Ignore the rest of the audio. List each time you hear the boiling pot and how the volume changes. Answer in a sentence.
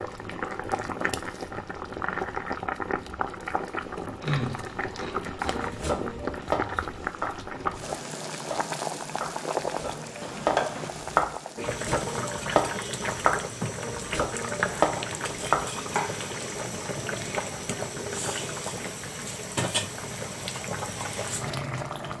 The boiling pot can be heard from 0.0 to 22.1 s, at a steady volume.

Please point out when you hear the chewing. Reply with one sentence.
You can hear the chewing from 4.2 to 5.7 s.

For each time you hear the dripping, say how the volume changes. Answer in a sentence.
You can't hear the dripping here.